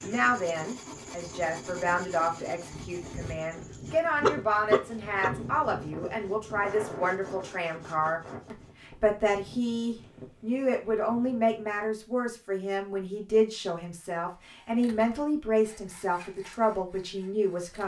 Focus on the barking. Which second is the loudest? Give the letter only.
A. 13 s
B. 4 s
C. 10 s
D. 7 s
B.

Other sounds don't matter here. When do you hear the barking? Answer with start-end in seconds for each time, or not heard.
2.7-5.3.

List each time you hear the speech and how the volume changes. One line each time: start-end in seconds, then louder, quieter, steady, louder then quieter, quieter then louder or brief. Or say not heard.
0.0-17.8 steady.